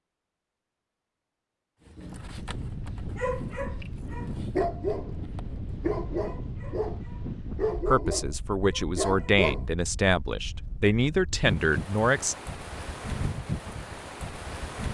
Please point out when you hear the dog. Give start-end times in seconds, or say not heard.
1.9-9.7.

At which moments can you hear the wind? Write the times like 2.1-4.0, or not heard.
2.0-14.9.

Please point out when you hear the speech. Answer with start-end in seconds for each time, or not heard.
7.8-12.3.